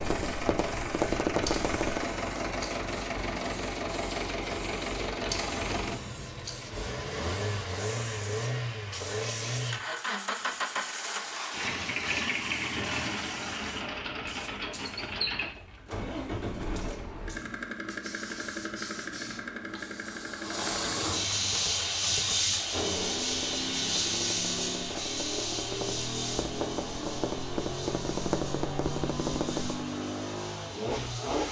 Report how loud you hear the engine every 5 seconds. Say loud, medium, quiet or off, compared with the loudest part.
loud, loud, loud, loud, medium, loud, loud.